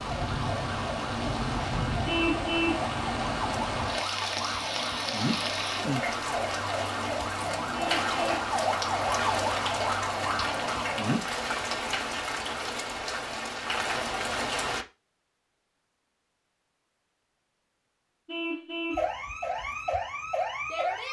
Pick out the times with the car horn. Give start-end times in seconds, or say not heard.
2.0-2.9, 7.7-8.4, 18.2-19.1.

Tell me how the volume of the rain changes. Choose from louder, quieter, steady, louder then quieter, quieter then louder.
steady.